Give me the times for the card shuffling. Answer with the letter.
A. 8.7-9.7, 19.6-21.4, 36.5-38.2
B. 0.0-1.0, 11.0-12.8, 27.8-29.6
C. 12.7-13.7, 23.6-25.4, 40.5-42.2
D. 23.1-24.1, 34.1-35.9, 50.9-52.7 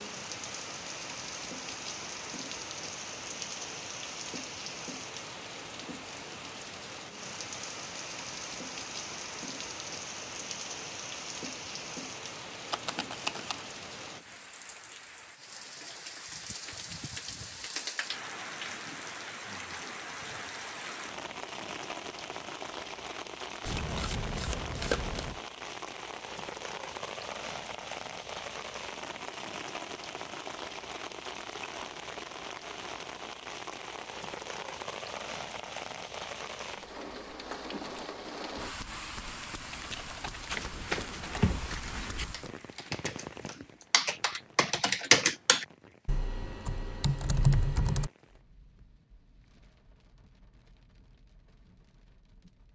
C.